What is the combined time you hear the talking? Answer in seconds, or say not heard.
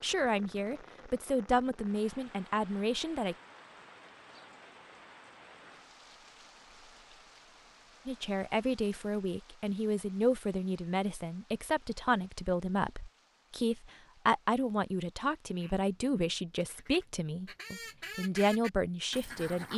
15 s.